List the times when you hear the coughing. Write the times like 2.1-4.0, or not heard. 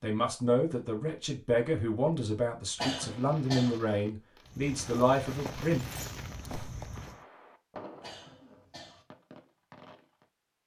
2.8-3.8, 8.0-9.1.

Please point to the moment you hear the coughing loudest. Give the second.
3 s.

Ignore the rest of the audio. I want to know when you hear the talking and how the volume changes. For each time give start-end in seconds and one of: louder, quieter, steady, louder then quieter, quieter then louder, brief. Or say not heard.
0.0-5.8 steady.